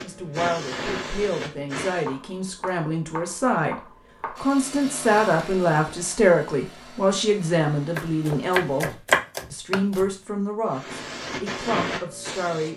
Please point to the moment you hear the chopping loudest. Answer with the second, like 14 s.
9 s.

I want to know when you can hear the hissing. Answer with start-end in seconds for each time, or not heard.
0.0-2.1, 10.7-12.7.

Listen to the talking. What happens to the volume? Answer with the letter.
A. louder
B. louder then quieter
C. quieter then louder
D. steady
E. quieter
B.